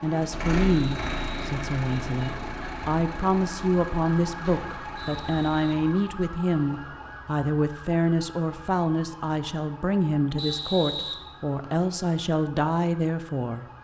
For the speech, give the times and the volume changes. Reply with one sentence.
The speech can be heard from 0.0 to 13.7 s, at a steady volume.